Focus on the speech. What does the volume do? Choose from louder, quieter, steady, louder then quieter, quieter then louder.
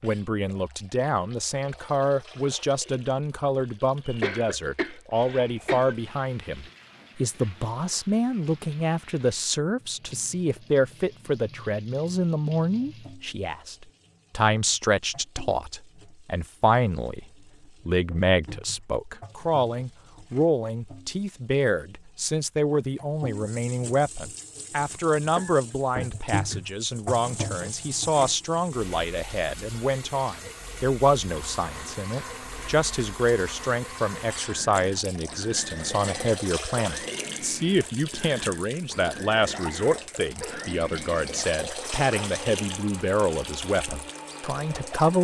steady.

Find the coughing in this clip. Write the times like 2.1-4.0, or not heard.
4.0-6.0, 25.4-26.6, 39.5-40.9.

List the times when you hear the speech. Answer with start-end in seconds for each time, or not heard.
0.0-17.2, 17.9-45.1.